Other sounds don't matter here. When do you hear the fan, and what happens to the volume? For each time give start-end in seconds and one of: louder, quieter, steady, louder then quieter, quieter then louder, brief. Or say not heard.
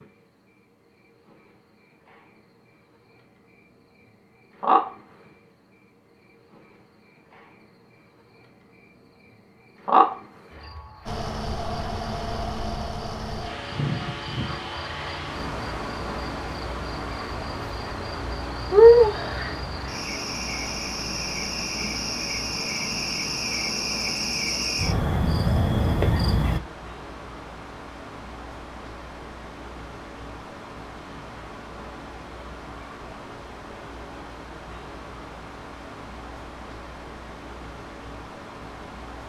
11.1-39.2 quieter.